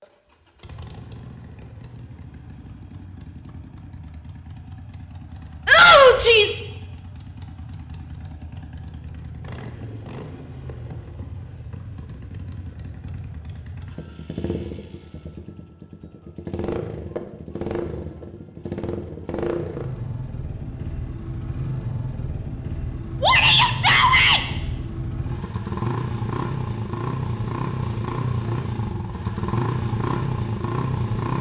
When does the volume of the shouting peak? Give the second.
6 s.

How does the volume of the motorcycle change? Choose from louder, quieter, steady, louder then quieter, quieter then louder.
louder.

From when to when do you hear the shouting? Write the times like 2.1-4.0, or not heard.
5.7-6.6, 23.2-24.4.